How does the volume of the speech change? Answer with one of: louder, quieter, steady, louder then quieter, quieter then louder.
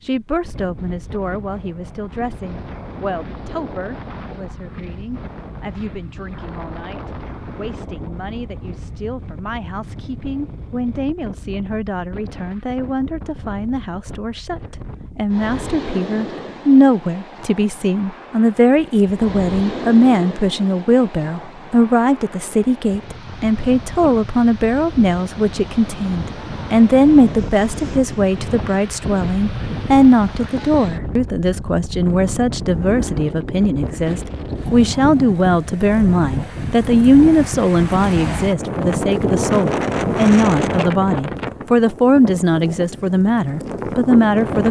louder.